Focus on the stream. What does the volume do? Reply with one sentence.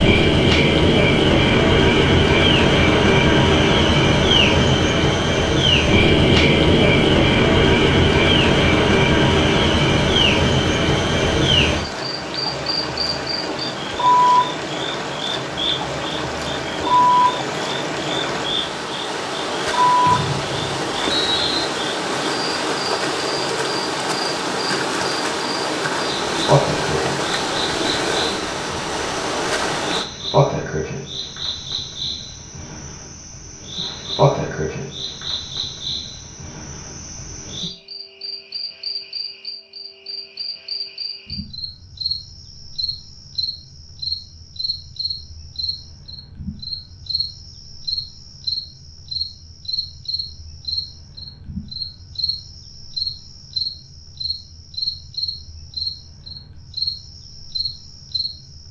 The volume of the stream goes up.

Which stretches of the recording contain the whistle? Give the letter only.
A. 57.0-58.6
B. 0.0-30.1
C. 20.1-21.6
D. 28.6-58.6
C.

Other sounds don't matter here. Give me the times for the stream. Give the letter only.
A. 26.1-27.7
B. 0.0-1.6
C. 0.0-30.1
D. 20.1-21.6
C.